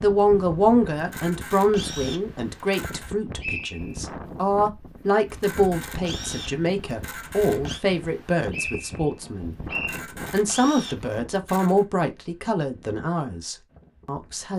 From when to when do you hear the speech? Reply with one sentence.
The speech can be heard from 0.0 to 14.5 s.